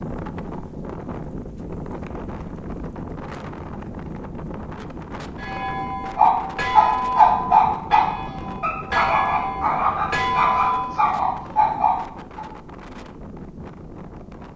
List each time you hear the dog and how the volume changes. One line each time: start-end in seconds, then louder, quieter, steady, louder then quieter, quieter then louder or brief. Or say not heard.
6.2-12.4 quieter.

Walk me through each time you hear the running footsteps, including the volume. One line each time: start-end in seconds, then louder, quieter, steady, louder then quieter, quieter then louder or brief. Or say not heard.
not heard.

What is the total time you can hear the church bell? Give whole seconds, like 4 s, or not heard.
6 s.